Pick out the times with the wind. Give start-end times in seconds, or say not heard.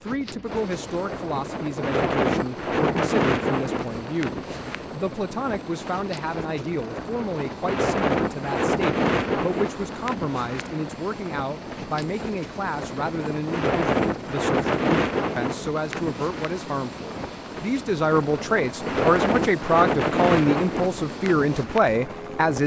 0.1-22.6.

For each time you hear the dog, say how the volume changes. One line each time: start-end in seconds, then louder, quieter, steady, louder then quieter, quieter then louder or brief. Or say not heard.
not heard.